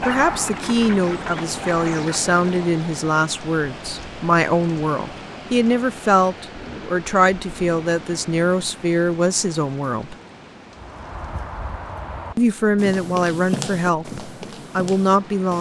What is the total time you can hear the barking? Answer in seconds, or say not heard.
2 s.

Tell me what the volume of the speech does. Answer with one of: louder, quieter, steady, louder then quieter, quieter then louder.
steady.